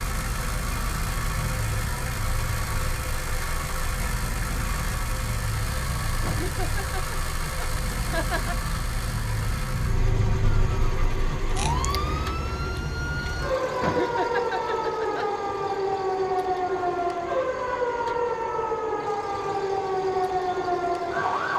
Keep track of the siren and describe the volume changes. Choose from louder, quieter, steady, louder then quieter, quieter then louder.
louder.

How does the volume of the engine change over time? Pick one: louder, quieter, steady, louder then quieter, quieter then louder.
quieter.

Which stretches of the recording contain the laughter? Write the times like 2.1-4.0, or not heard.
6.2-8.6, 13.8-15.2.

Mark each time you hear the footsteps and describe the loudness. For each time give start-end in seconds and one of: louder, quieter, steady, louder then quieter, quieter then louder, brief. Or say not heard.
not heard.